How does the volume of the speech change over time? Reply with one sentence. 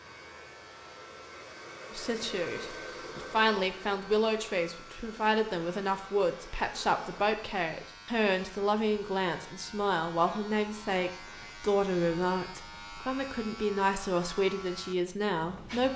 The loudness of the speech stays about the same.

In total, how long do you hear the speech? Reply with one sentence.
The speech can be heard for 14 seconds in total.